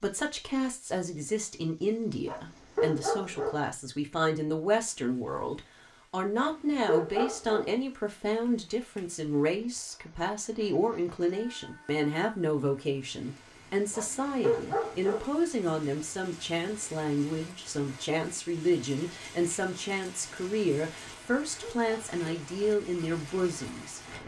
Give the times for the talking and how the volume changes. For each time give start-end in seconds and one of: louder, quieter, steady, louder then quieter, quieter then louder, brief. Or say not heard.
0.0-24.2 steady.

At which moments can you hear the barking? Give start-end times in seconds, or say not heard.
2.2-3.6, 6.3-7.7, 13.9-15.3, 21.1-22.2.